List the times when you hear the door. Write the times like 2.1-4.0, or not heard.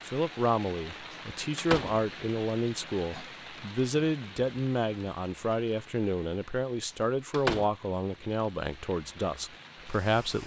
1.6-2.0, 7.3-7.7.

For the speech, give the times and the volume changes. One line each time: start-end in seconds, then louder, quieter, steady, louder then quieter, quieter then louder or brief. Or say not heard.
0.1-10.4 steady.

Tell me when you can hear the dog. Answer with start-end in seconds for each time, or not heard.
not heard.